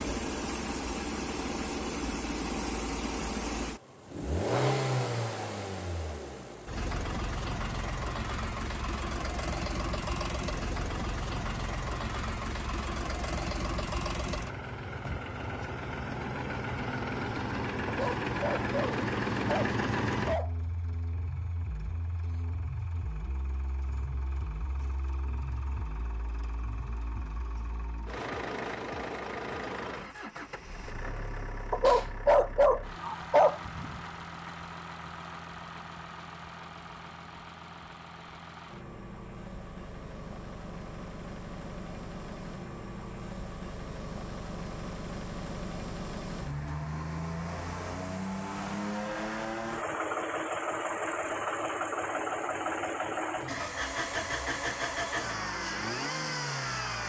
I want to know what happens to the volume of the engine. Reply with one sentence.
The volume of the engine goes down, then up.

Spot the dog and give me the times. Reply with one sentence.
The dog can be heard from 17.9 to 20.5 s and from 31.7 to 34.0 s.